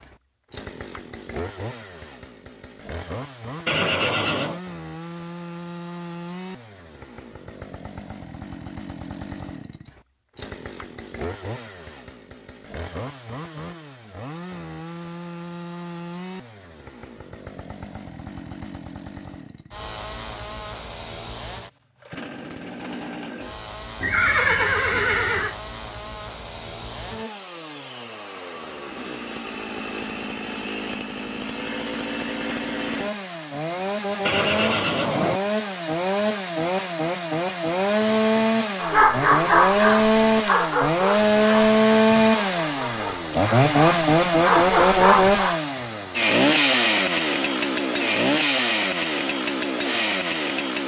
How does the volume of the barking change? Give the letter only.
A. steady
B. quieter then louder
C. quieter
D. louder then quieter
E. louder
B.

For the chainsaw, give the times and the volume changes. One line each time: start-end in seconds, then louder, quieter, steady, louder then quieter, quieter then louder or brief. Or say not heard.
0.0-50.8 louder.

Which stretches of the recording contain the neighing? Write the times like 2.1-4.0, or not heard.
3.6-4.6, 24.0-25.6, 34.2-35.4.